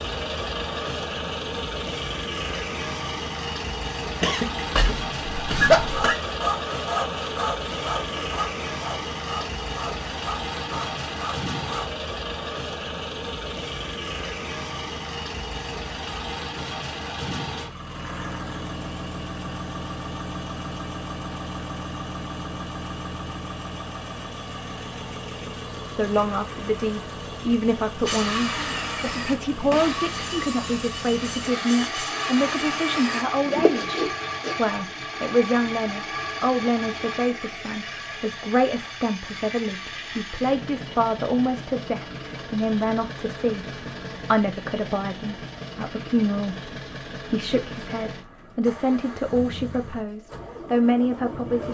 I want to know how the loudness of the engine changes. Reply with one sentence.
The loudness of the engine goes down.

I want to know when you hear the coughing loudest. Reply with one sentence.
The volume of the coughing peaks at 6 seconds.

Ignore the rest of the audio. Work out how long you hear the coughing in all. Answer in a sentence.
The coughing can be heard for 2 seconds in total.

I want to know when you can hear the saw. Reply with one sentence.
You can hear the saw from 5.8 to 11.9 s and from 28.1 to 34.5 s.